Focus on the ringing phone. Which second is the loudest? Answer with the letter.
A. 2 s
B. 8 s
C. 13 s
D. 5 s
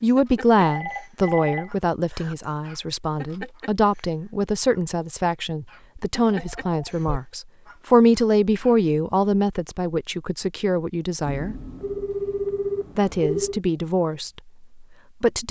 C.